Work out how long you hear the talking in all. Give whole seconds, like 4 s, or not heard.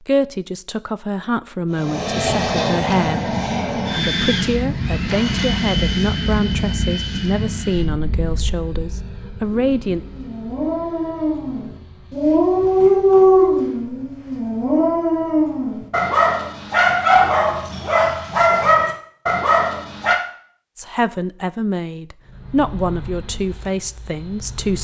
14 s.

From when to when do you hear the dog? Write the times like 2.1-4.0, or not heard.
9.5-20.1.